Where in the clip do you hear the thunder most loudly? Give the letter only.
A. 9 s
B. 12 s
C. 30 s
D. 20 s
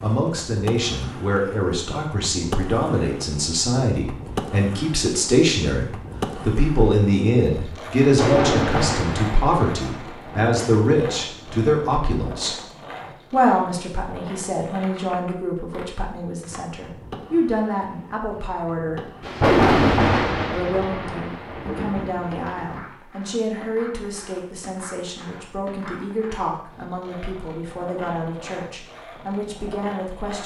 D.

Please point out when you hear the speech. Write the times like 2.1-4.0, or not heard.
0.0-12.6, 13.3-19.1, 20.5-30.4.